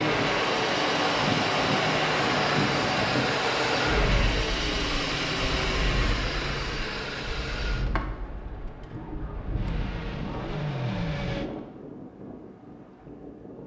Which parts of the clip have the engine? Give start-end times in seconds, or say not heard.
0.0-11.5.